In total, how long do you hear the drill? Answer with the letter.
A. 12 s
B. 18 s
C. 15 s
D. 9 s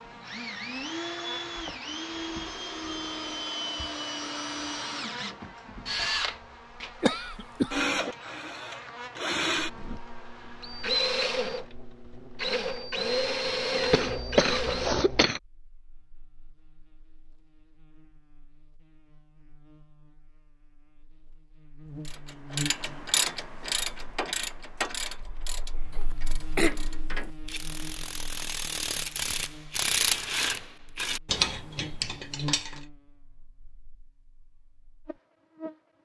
C.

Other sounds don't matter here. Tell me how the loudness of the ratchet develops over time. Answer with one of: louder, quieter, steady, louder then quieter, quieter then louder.
quieter then louder.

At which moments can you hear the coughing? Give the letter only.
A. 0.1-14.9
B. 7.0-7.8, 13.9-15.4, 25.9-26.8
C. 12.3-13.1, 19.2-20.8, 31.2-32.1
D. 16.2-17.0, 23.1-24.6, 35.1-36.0
B.